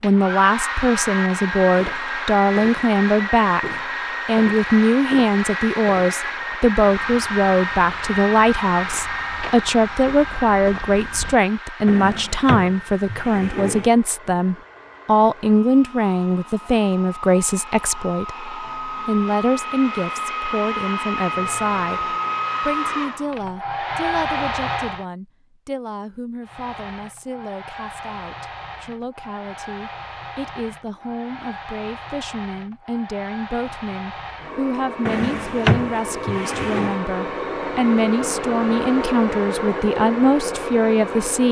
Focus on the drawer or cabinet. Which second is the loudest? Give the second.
36 s.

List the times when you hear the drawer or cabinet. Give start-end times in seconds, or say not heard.
11.8-13.9, 35.0-37.0.